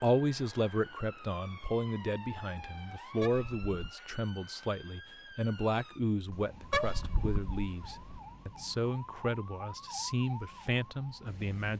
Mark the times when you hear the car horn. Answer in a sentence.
You can hear the car horn from 3.2 to 3.7 s and from 6.7 to 8.2 s.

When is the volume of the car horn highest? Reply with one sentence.
The volume of the car horn peaks at 7 seconds.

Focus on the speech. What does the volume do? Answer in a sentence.
The volume of the speech stays about the same.